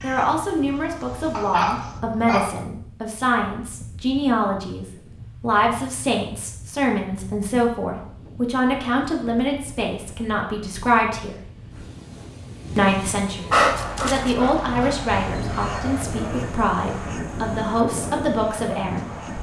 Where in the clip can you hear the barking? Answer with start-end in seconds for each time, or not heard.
1.3-2.6, 13.5-15.8.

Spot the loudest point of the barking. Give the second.
14 s.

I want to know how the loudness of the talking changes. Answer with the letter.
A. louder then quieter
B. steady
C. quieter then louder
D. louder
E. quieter
B.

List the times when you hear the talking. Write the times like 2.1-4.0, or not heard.
0.0-11.3, 12.8-19.1.